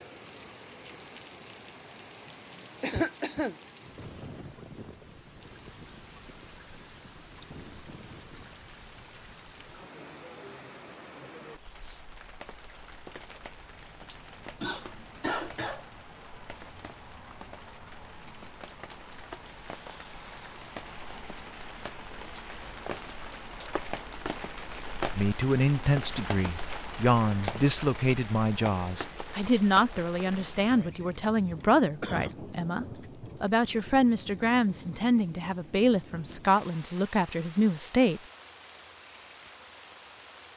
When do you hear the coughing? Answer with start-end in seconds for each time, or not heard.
2.8-3.5, 14.6-15.9, 30.2-32.4.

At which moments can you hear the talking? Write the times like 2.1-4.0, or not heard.
25.1-38.2.